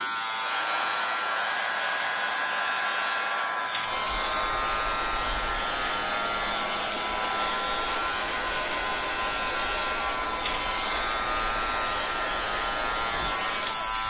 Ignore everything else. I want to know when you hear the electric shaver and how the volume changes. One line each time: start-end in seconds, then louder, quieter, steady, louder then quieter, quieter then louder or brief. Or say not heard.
0.0-14.0 steady.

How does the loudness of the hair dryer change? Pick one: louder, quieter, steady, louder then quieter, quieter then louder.
steady.